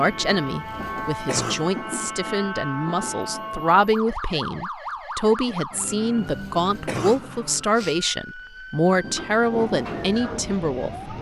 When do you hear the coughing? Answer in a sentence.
You can hear the coughing from 0.6 to 1.9 s and from 6.2 to 8.0 s.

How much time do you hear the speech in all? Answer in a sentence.
The speech can be heard for 11 seconds in total.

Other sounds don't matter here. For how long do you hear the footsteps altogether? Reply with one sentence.
You can't hear the footsteps here.